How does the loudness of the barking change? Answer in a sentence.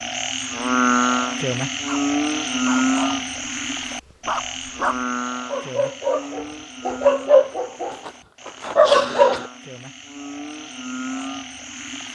The loudness of the barking goes up.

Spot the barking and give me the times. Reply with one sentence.
You can hear the barking from 1.9 to 9.5 s.